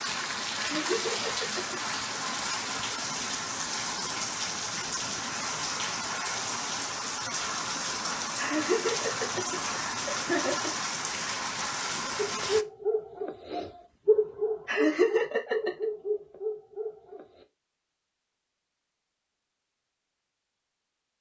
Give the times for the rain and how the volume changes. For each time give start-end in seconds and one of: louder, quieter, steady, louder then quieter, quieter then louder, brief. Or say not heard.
0.0-12.7 steady.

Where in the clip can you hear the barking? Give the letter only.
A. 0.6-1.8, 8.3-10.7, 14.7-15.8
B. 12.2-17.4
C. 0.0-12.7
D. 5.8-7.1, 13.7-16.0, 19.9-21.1
B.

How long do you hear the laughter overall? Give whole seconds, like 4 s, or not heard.
5 s.